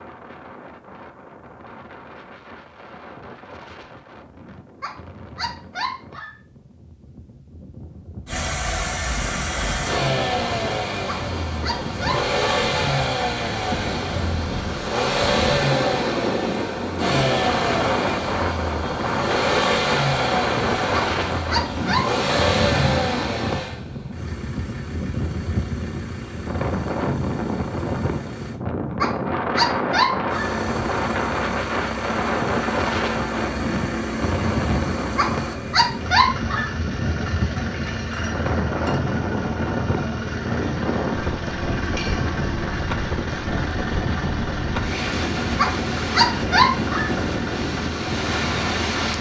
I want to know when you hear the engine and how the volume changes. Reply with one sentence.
The engine can be heard from 8.2 to 28.6 s, getting quieter; and from 30.2 to 49.1 s, at a steady volume.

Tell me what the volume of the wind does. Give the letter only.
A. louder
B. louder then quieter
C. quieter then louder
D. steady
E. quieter
A.